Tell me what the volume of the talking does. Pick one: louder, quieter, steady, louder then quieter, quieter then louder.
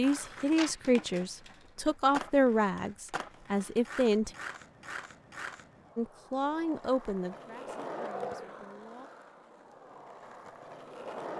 quieter.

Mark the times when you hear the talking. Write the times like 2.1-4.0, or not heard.
0.0-4.3, 6.0-9.1.